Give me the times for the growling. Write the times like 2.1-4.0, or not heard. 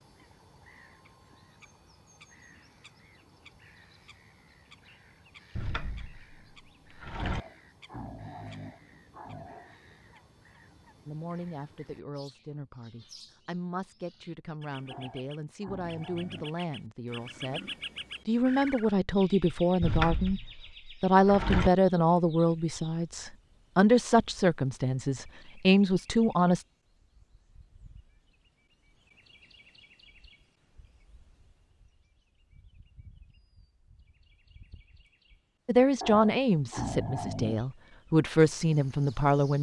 7.2-9.8, 14.9-16.6, 36.0-37.6.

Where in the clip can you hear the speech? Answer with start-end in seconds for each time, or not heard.
11.1-20.4, 21.0-26.6, 35.6-39.5.